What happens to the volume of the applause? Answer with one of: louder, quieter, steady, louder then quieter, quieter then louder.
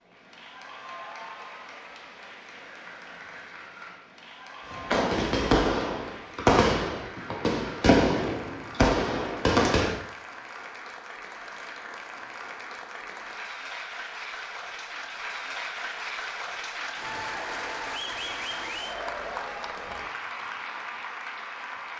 louder.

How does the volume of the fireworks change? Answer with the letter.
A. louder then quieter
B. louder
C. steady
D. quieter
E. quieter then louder
E.